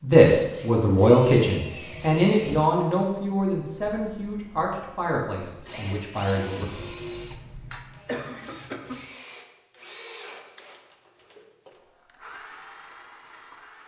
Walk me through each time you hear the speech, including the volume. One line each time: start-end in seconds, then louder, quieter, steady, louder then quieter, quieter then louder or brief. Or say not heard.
0.0-6.7 quieter.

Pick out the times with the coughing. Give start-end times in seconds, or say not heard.
7.2-9.1.